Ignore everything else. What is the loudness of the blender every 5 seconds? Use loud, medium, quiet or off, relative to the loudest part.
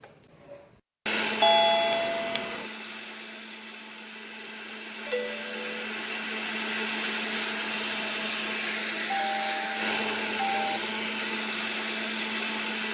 medium, loud, loud.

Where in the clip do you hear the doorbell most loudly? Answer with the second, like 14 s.
2 s.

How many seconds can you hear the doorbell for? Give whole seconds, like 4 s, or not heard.
4 s.